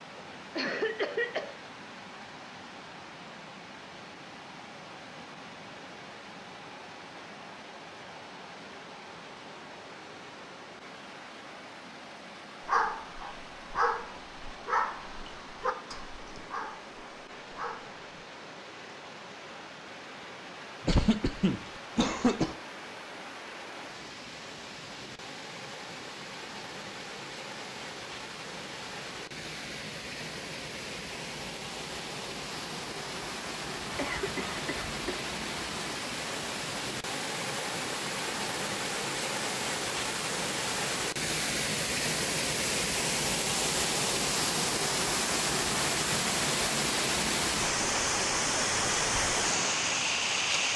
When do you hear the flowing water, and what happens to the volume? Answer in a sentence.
You can hear the flowing water from 0.0 to 50.7 s, getting louder.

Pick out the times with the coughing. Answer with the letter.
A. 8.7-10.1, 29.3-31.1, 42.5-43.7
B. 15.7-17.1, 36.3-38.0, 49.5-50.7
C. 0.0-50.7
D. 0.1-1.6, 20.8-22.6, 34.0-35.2
D.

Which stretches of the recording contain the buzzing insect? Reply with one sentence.
The buzzing insect can't be heard in this clip.